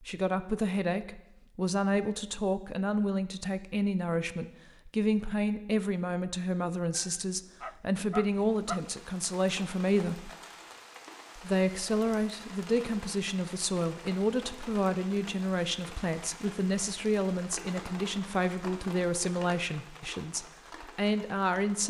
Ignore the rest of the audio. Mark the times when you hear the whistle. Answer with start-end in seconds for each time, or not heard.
not heard.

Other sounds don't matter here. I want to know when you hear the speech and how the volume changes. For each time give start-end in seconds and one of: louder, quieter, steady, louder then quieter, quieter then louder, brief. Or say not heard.
0.0-10.3 steady
11.3-21.8 steady.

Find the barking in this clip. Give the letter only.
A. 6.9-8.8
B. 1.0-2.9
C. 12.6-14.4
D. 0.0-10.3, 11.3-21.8
A.